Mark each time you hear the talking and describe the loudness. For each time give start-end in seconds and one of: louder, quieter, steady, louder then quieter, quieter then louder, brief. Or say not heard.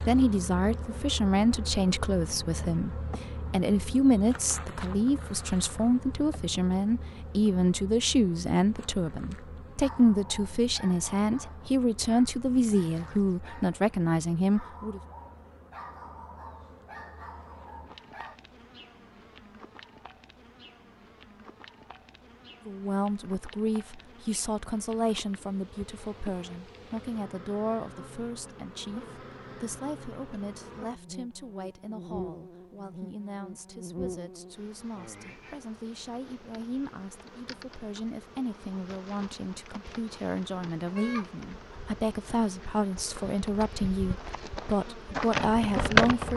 0.1-15.0 steady
22.6-46.3 quieter then louder.